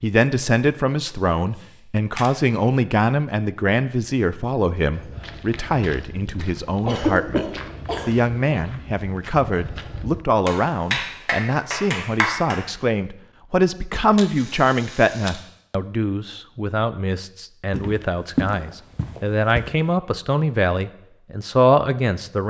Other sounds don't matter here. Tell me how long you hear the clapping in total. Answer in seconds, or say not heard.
2 s.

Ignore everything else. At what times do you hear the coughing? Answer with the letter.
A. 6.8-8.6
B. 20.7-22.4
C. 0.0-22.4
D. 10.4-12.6
A.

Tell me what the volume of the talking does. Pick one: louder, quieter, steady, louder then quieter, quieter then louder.
steady.